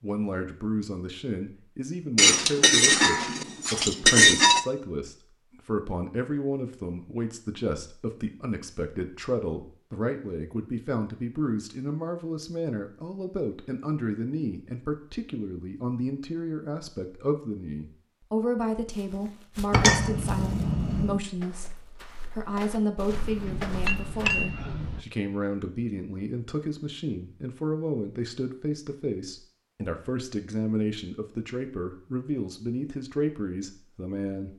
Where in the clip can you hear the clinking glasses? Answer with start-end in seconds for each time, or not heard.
2.1-4.7, 19.7-21.2, 23.1-25.1.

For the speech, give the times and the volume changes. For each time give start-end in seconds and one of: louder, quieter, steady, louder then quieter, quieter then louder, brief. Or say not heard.
0.0-34.5 steady.